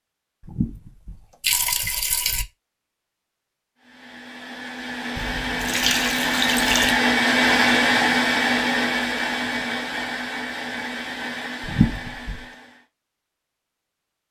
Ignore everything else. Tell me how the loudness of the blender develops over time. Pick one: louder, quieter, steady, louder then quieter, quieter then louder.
louder then quieter.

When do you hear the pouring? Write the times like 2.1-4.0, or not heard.
0.4-2.5, 5.2-7.0, 11.6-12.4.